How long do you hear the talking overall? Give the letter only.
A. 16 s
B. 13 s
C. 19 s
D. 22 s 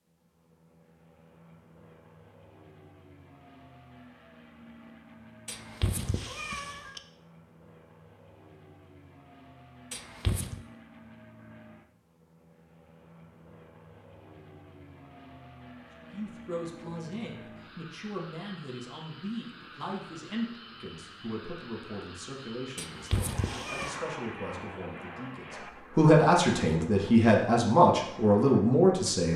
B.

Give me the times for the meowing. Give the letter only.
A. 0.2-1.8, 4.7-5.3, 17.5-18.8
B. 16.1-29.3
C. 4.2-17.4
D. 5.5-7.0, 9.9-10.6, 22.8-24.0
D.